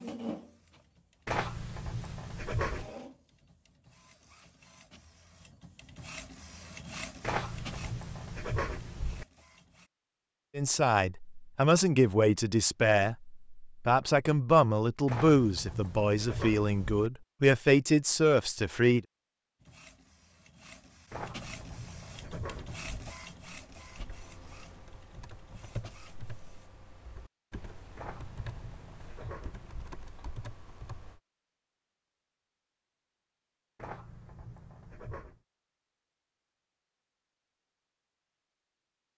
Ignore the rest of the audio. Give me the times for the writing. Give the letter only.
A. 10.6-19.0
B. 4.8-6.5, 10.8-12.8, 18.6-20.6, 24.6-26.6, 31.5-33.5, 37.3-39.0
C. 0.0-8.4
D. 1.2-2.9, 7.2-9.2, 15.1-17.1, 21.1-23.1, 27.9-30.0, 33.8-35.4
D.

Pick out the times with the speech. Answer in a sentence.
The speech can be heard from 10.6 to 19.0 s.